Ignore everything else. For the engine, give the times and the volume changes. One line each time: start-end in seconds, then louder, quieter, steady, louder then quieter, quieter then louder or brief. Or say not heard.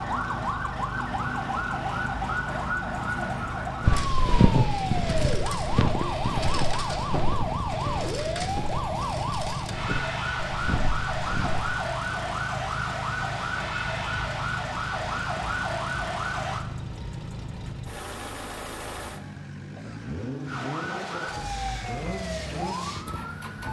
0.0-23.6 steady.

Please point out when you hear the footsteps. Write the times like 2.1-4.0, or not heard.
3.8-11.7.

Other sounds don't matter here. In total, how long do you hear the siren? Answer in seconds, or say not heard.
20 s.